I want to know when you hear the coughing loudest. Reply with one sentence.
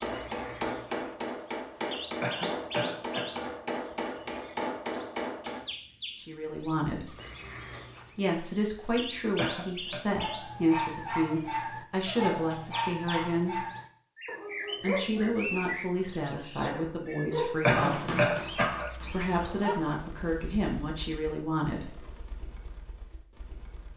The volume of the coughing peaks at 18 seconds.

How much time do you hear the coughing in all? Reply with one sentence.
The coughing can be heard for 3 seconds in total.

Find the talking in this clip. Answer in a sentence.
The talking can be heard from 6.2 to 7.1 s, from 8.2 to 13.6 s and from 14.8 to 21.9 s.